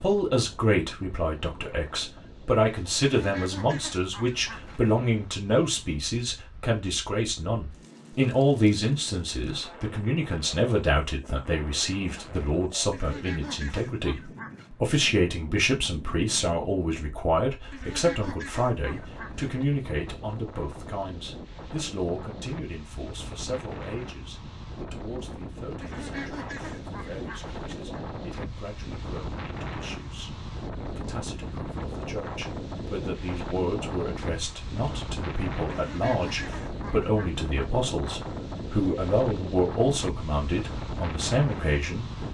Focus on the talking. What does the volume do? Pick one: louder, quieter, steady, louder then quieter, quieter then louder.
quieter then louder.